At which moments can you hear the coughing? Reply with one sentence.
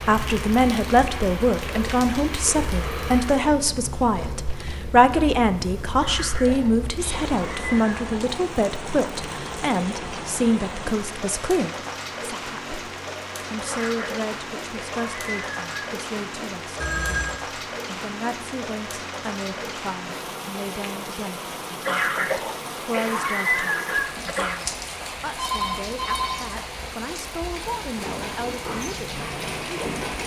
You can hear the coughing from 6.0 to 8.0 s, from 13.7 to 15.7 s and from 21.8 to 24.6 s.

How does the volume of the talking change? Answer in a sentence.
The loudness of the talking goes down.